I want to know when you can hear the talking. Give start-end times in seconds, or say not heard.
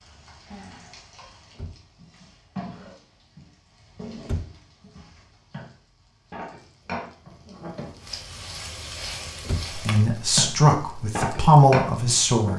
9.8-12.5.